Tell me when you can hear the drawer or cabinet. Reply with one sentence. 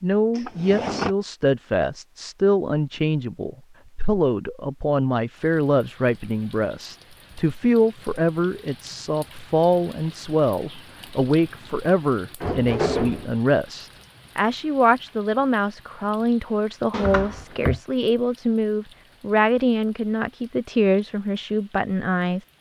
You can hear the drawer or cabinet from 0.3 to 1.1 s, from 12.4 to 13.2 s and from 16.9 to 17.8 s.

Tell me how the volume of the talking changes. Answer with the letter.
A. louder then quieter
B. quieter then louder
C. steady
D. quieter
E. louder
C.